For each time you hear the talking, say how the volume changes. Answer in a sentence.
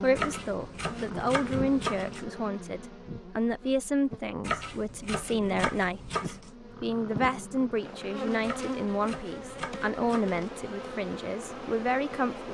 The talking can be heard from 0.0 to 12.4 s, at a steady volume.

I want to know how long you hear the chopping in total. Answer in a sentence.
The chopping can be heard for 6 seconds in total.